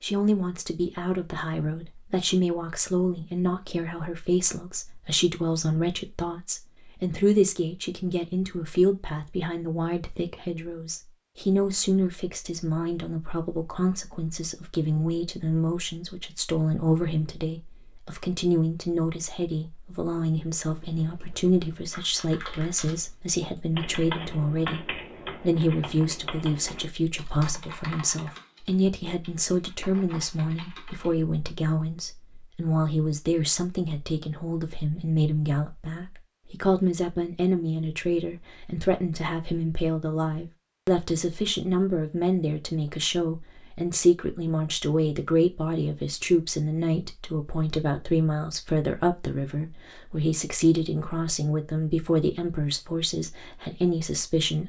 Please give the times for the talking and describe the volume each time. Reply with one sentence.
The talking can be heard from 0.0 to 54.6 s, at a steady volume.